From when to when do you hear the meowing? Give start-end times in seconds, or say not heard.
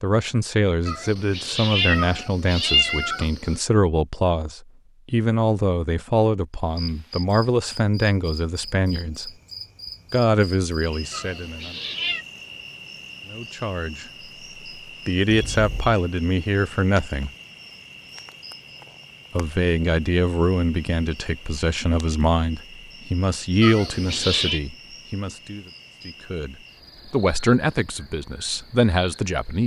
0.8-3.6, 11.1-12.2, 23.6-24.6.